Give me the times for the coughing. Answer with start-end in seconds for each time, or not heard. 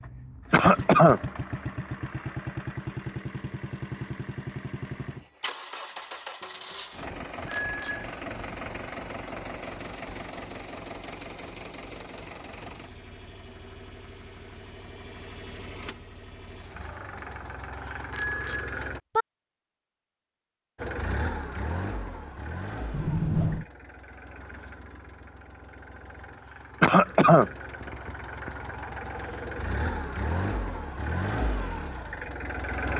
0.5-1.2, 26.8-27.5.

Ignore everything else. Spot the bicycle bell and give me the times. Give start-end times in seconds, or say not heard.
7.5-8.1, 18.1-19.2, 22.9-23.6.